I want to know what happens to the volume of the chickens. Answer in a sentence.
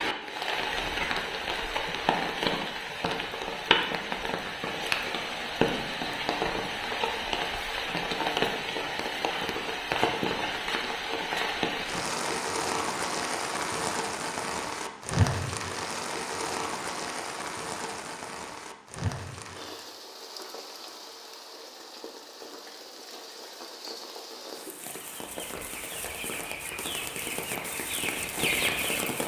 The volume of the chickens goes up.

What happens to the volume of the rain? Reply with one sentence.
The volume of the rain goes down.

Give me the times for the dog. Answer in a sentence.
You can't hear the dog here.